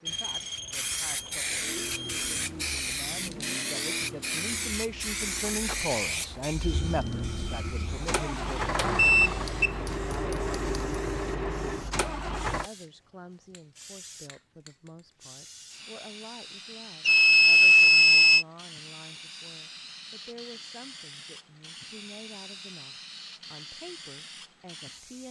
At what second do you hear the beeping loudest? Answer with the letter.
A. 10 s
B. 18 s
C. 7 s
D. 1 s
B.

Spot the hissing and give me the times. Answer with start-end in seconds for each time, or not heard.
0.0-25.2.